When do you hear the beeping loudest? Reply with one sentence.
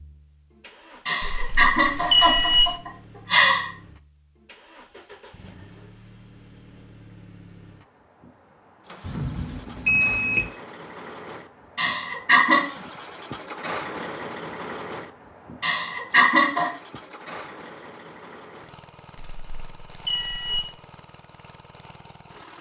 The volume of the beeping peaks at 2 seconds.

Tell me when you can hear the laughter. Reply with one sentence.
You can hear the laughter from 1.1 to 3.7 s, from 11.8 to 12.6 s and from 15.6 to 16.7 s.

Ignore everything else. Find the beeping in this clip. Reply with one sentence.
The beeping can be heard from 1.2 to 2.8 s, from 9.1 to 10.5 s and from 19.1 to 20.7 s.